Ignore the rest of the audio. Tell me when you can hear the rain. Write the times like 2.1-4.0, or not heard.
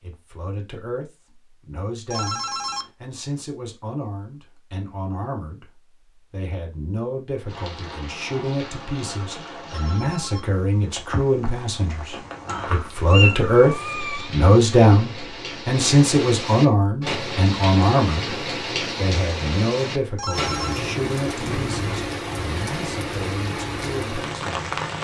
7.5-24.9.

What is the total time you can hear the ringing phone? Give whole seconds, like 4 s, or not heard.
2 s.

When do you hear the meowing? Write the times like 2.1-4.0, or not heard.
12.4-14.3.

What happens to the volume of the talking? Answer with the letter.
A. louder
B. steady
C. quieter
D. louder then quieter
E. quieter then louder
D.